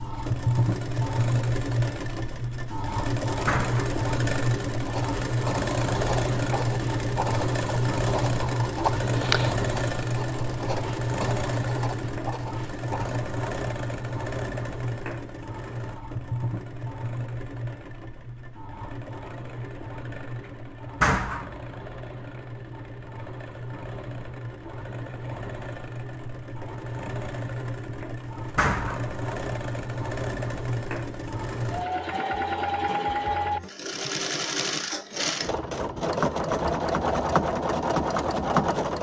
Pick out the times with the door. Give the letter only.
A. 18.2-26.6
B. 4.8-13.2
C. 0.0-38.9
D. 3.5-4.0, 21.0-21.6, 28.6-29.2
D.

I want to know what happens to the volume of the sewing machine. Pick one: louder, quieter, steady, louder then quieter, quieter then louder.
quieter then louder.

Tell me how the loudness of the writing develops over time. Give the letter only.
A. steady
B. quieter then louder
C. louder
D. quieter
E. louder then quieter
E.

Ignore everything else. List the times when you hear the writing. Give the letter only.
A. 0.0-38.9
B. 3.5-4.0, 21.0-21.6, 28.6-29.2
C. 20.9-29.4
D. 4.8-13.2
D.